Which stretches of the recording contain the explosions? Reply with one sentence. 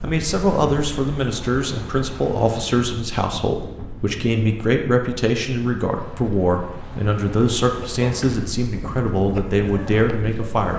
The explosions can't be heard in this clip.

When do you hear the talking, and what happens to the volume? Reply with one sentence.
The talking can be heard from 0.0 to 10.7 s, at a steady volume.